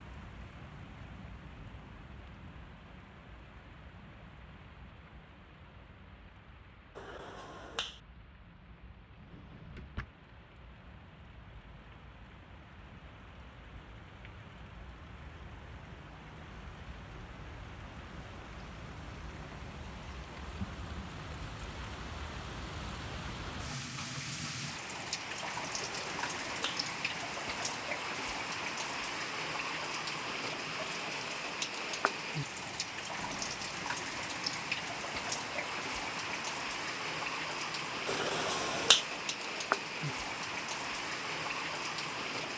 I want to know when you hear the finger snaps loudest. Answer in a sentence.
The volume of the finger snaps peaks at 39 seconds.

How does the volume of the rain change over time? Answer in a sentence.
The volume of the rain goes up.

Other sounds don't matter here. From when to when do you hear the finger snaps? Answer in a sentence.
You can hear the finger snaps from 7.0 to 8.0 s, from 25.8 to 26.9 s and from 38.0 to 39.0 s.